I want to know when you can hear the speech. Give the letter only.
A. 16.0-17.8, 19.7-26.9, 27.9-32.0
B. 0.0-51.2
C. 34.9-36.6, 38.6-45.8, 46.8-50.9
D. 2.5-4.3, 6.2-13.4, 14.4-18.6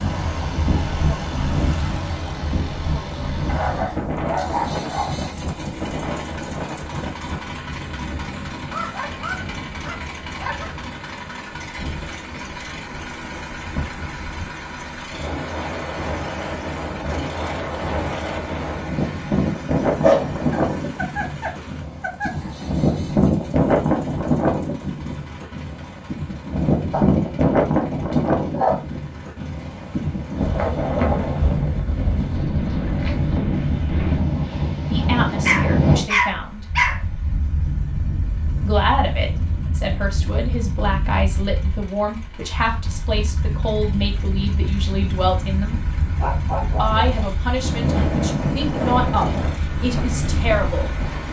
C.